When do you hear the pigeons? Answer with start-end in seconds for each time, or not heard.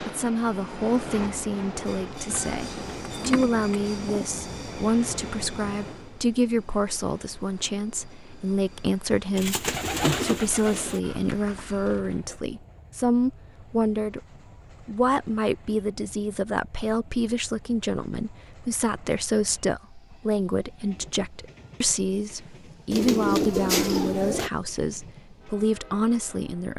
2.2-4.4, 9.3-11.0, 22.9-24.5.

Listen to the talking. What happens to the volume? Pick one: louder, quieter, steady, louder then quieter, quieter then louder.
steady.